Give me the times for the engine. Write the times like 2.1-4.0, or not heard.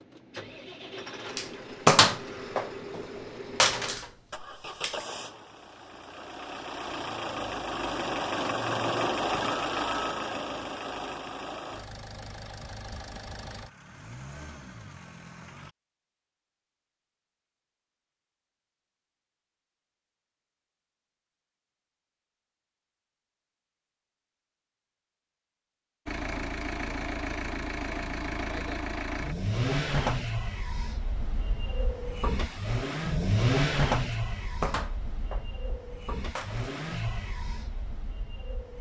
0.0-15.7, 26.1-38.7.